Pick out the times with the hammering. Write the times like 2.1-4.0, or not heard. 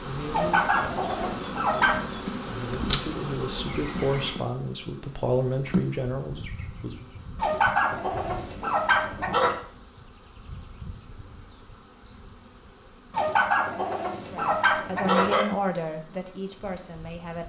not heard.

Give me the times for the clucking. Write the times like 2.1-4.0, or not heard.
0.3-2.1, 7.3-9.6, 13.1-15.4.